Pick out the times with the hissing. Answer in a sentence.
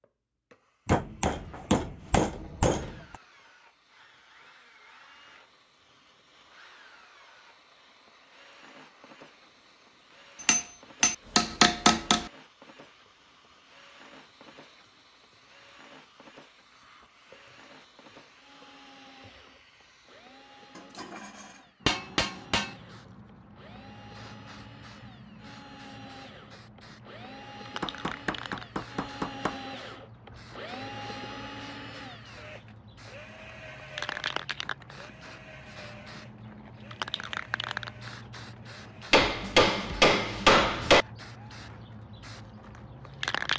You can hear the hissing from 0.0 to 43.5 s.